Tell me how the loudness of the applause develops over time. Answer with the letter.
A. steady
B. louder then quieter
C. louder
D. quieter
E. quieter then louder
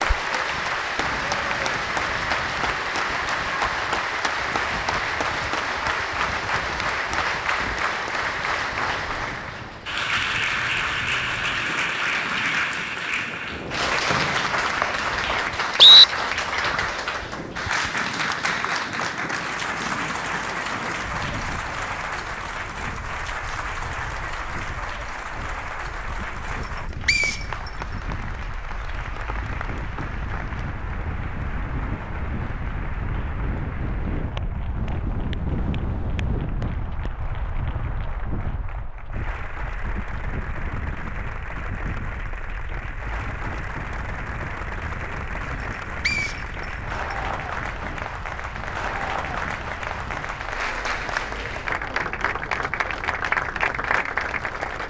E.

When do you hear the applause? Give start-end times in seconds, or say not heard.
0.0-54.8.